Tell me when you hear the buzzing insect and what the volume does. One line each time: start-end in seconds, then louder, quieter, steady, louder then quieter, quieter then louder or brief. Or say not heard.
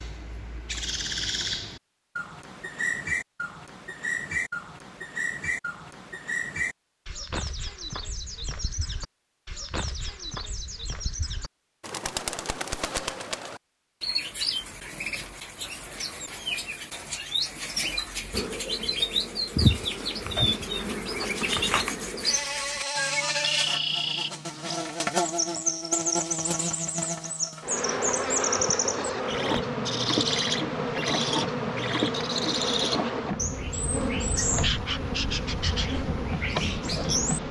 18.3-37.4 steady.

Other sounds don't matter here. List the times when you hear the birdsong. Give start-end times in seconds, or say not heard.
0.0-37.4.